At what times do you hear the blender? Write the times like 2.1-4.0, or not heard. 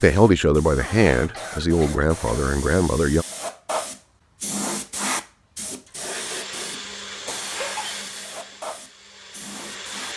6.1-10.1.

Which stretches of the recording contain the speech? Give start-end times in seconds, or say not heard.
0.0-3.2.